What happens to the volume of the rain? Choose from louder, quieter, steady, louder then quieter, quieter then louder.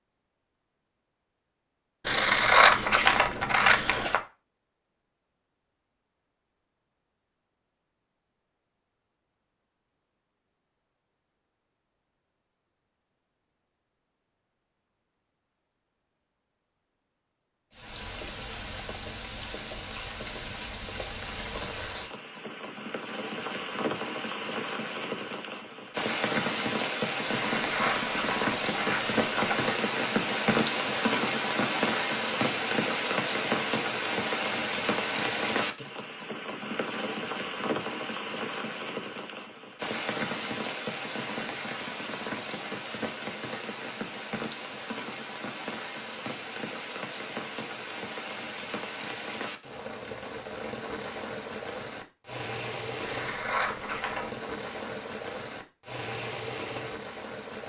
louder then quieter.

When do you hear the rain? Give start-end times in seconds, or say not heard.
17.7-57.6.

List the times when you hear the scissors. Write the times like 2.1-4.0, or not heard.
2.0-4.2, 27.4-29.7, 53.0-54.3.